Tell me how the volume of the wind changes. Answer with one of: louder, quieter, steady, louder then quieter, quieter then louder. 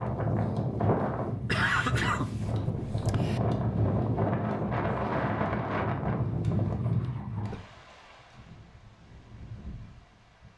quieter.